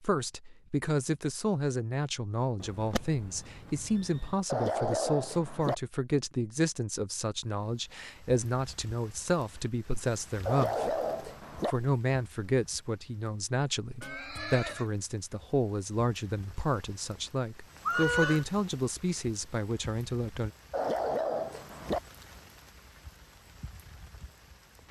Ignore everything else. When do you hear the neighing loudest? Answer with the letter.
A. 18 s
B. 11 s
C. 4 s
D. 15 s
A.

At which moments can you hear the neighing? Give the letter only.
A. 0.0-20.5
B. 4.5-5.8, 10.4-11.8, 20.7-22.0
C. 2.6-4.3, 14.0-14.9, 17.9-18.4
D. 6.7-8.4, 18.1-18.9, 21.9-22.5
C.